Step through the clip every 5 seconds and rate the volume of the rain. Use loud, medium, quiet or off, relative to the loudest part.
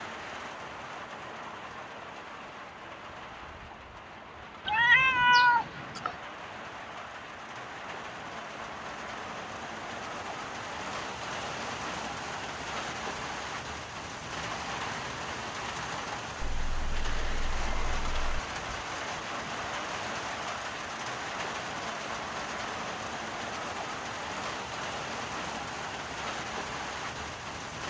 medium, medium, loud, loud, loud, loud.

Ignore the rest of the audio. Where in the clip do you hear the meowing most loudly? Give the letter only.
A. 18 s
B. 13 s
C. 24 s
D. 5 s
D.